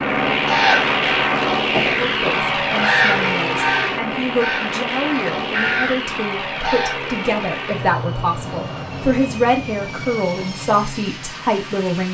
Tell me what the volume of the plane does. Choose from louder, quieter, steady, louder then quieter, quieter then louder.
quieter.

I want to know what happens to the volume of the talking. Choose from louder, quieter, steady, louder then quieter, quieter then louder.
louder.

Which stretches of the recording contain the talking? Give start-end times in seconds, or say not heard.
2.0-12.0.